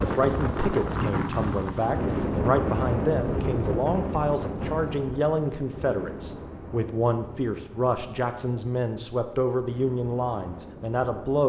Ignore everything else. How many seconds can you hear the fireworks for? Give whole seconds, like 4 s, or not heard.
not heard.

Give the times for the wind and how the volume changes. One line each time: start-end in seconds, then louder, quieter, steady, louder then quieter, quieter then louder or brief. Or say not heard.
0.0-11.4 quieter.